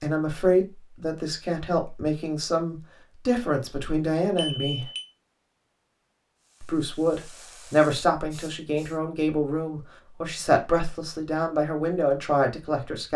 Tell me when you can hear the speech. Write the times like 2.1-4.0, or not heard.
0.0-4.8, 6.6-13.1.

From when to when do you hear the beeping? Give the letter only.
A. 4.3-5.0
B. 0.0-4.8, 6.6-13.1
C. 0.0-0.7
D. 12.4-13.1
A.